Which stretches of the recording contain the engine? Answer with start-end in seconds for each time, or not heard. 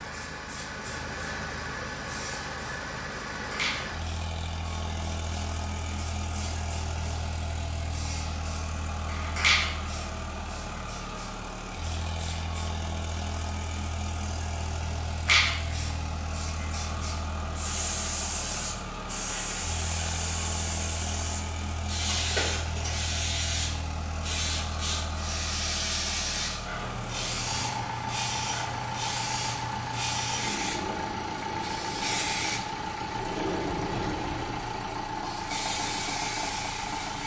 0.0-37.2.